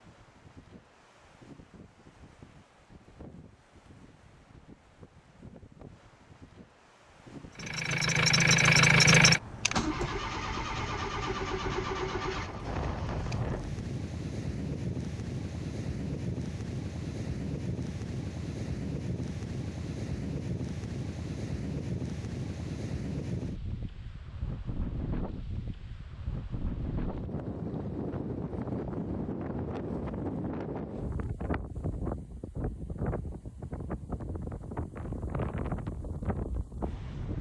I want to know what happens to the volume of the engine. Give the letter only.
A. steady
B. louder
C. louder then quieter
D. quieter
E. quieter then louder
D.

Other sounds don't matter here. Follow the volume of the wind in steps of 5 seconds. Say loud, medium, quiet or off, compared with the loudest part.
quiet, quiet, loud, loud, loud, loud, loud, loud.